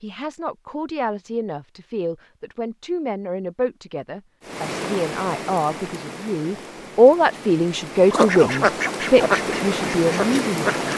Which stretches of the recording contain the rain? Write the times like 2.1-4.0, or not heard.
4.4-10.9.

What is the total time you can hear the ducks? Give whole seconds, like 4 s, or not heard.
3 s.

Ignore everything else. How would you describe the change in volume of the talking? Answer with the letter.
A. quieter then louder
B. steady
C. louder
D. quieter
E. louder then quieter
E.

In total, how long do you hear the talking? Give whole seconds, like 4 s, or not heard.
11 s.